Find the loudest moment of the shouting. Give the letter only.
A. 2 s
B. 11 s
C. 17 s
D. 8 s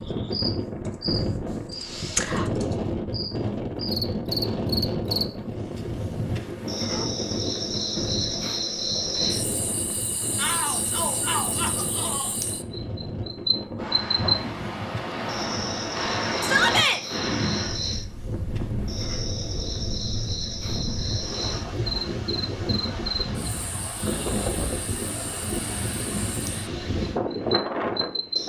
C.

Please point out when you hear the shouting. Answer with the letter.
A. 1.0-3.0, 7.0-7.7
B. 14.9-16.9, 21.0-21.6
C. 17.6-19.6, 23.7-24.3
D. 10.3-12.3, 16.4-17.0
D.